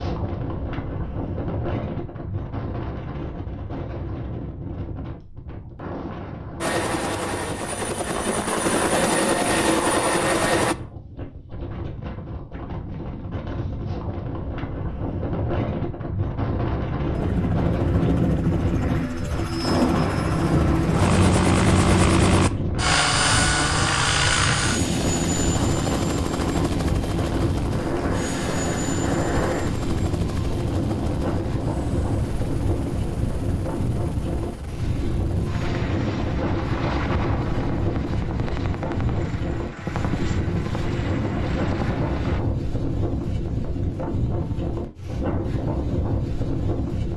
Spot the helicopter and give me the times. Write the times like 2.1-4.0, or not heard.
6.6-10.8, 17.1-42.4.